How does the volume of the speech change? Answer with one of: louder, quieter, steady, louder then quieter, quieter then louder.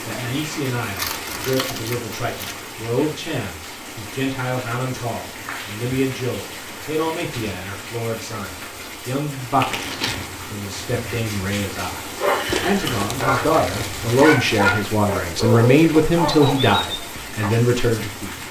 louder.